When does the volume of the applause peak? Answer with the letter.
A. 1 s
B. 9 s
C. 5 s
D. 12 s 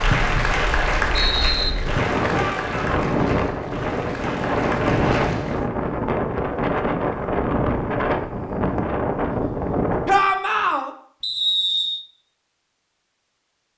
A.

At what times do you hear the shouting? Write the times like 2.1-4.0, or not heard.
2.3-3.0, 10.1-10.9.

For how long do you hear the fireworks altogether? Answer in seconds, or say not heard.
not heard.